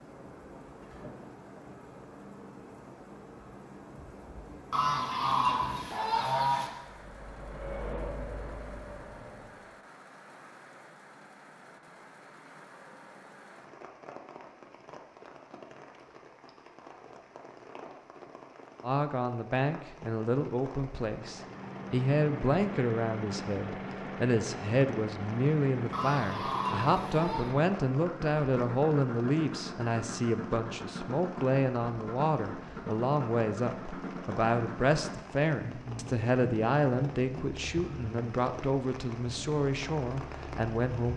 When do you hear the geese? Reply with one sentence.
You can hear the geese from 4.7 to 6.7 s and from 25.9 to 27.6 s.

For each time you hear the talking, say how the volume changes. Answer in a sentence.
You can hear the talking from 18.8 to 41.1 s, at a steady volume.